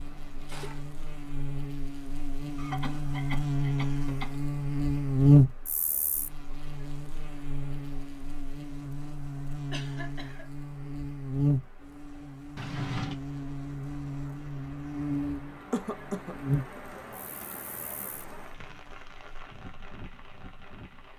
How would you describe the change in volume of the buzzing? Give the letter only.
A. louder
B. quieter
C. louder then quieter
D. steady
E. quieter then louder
C.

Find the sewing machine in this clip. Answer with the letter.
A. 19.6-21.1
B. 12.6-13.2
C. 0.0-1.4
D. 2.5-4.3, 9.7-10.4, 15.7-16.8
C.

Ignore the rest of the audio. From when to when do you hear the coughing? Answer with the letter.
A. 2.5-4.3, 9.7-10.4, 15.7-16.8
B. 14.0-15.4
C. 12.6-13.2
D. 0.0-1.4
A.